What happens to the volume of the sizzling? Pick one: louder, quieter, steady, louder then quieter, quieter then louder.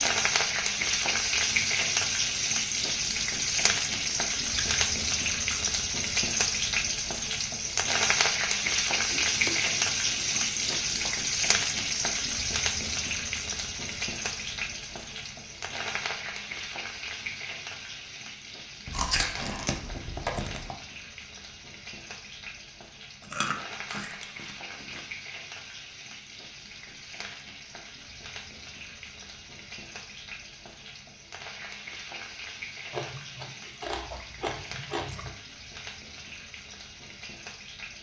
quieter.